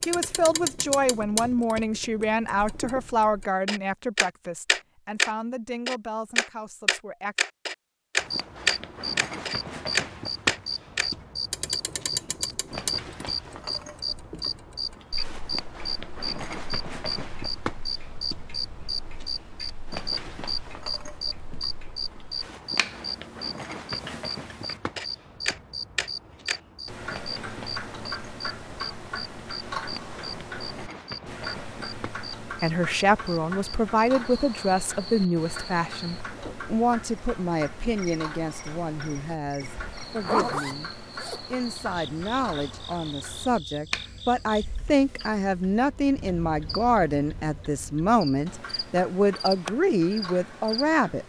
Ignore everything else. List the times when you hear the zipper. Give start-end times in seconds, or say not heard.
40.0-41.5.